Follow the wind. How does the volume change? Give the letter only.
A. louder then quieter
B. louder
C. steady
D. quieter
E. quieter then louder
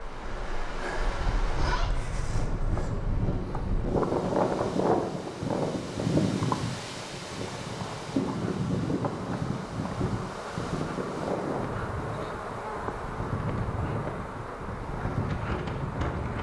A.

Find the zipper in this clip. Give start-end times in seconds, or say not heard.
1.2-1.9.